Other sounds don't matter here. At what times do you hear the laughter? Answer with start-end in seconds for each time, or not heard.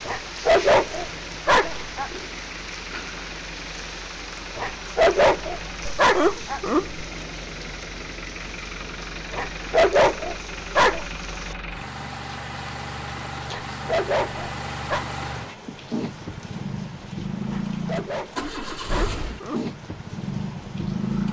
5.8-7.0, 18.8-19.6.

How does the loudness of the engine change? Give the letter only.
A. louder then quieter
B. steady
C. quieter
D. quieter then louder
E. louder
E.